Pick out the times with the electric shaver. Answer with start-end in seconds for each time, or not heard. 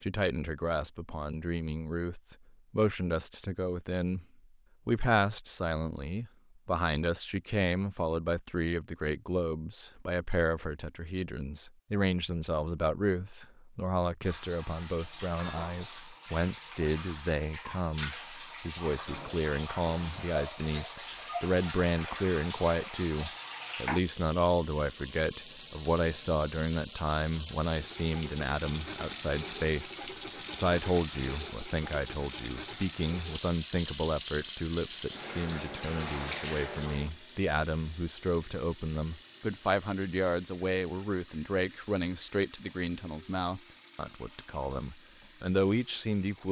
not heard.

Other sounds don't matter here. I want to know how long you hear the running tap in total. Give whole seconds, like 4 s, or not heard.
32 s.